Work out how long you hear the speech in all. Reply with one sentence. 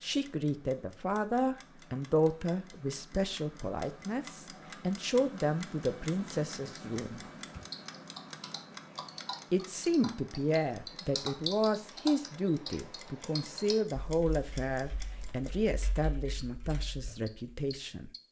The speech can be heard for 16 seconds in total.